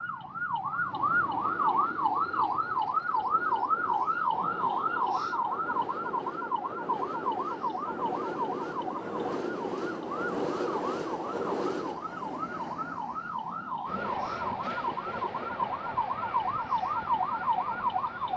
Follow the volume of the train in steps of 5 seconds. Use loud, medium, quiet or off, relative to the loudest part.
medium, loud, loud, medium.